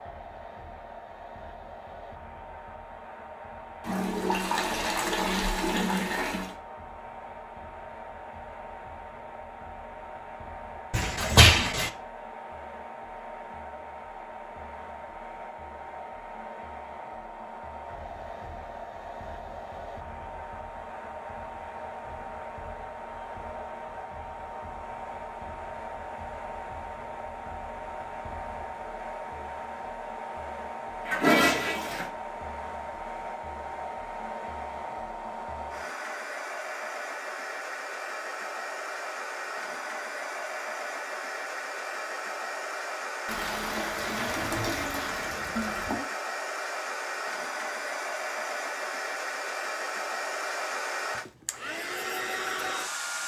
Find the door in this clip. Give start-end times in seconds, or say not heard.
10.9-11.9.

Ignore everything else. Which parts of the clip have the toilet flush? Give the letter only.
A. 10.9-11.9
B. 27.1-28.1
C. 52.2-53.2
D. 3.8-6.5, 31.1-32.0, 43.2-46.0
D.